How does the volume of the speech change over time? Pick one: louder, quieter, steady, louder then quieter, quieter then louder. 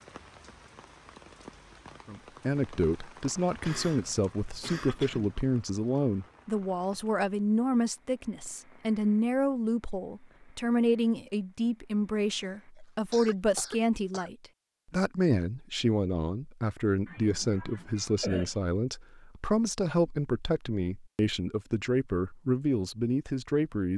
steady.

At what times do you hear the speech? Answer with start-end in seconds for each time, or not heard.
2.0-23.9.